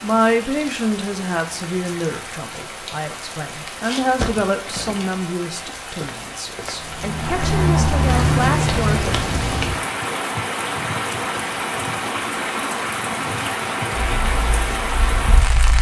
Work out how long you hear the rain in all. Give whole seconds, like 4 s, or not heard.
16 s.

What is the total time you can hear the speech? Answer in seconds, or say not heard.
9 s.